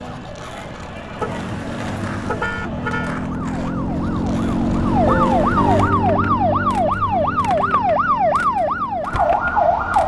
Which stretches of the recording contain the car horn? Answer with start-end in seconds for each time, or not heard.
1.2-3.2, 5.2-5.7.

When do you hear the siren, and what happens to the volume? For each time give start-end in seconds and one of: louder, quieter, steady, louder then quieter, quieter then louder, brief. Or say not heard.
0.0-10.0 louder.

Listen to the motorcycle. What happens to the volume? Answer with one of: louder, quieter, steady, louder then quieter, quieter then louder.
louder then quieter.